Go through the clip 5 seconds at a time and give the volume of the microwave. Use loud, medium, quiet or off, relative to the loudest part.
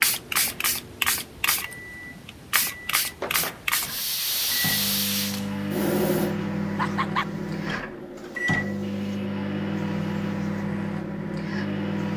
medium, loud, loud.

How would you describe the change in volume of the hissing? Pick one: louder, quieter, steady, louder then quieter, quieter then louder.
quieter.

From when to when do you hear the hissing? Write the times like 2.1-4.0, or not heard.
0.0-12.1.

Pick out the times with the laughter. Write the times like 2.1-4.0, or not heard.
6.8-7.3.